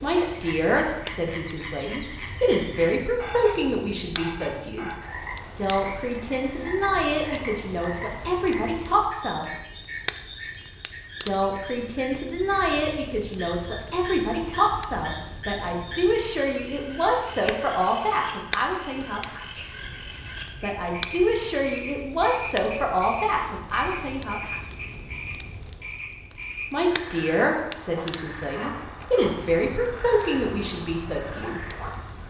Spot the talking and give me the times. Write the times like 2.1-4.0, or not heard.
0.0-4.9, 5.5-9.5, 11.2-19.4, 20.6-24.6, 26.7-31.6.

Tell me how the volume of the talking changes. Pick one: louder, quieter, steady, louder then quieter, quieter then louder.
steady.